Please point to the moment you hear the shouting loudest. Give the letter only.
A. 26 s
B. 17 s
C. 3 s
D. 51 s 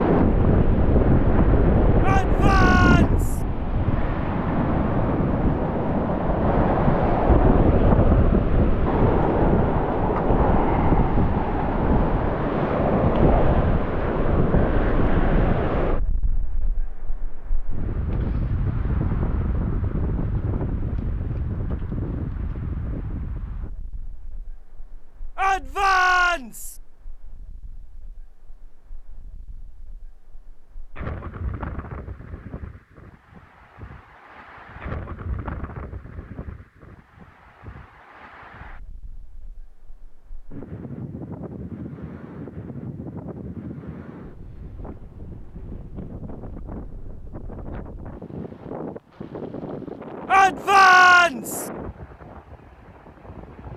D.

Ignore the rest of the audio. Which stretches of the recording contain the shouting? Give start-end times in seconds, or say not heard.
2.0-3.4, 25.4-26.8, 50.2-51.6.